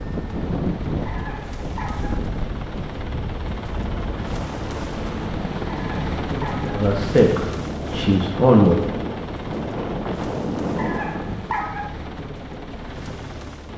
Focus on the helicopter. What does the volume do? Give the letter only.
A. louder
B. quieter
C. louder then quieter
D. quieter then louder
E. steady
C.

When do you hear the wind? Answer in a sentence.
The wind can be heard from 0.0 to 11.4 s.